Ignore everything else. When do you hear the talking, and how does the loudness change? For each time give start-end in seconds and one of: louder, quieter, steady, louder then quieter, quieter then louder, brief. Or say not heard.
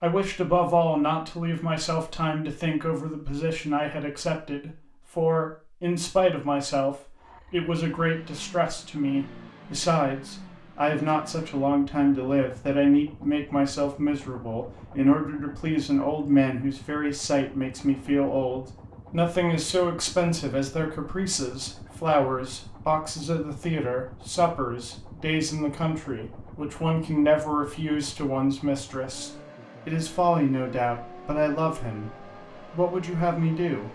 0.0-33.9 steady.